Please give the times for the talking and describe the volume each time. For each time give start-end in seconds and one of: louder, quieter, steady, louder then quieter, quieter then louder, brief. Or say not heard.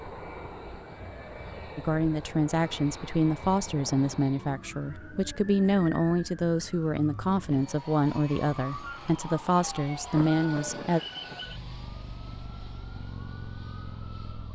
1.8-11.0 steady.